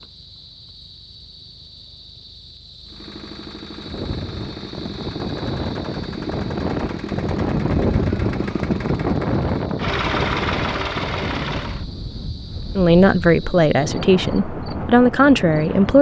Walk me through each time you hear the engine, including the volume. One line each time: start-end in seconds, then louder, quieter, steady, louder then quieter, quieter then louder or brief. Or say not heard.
2.9-11.8 louder.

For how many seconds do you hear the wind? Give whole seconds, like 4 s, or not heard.
12 s.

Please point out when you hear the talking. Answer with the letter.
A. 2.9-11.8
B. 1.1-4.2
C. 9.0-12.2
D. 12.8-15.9
D.